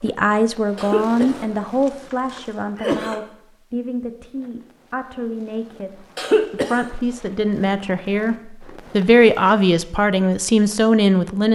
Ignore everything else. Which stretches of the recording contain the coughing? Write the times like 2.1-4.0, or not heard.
0.8-3.2, 6.2-6.8.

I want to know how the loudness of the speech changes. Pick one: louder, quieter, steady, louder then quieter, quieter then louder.
quieter then louder.